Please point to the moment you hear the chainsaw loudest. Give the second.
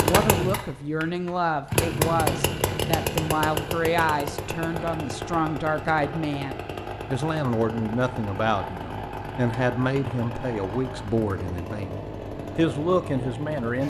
2 s.